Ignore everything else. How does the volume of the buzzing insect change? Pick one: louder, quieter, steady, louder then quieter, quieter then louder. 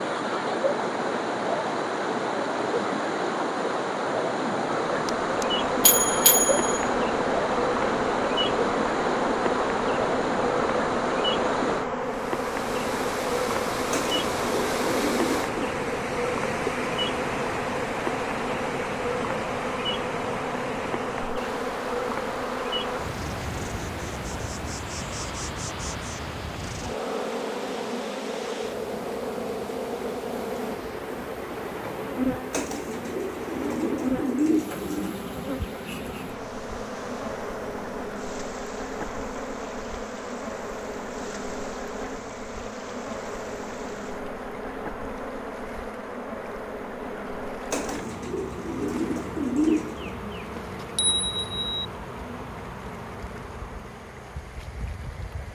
quieter.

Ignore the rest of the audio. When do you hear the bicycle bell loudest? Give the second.
6 s.